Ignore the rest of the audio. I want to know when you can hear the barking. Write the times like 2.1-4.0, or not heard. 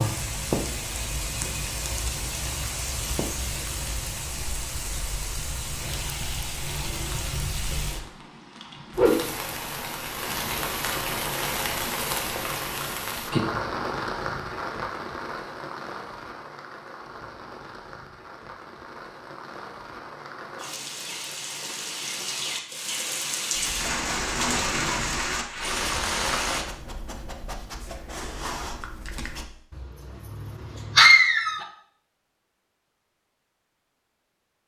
23.6-31.6.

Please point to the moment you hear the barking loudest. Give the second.
31 s.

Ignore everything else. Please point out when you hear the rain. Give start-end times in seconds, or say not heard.
0.0-26.6.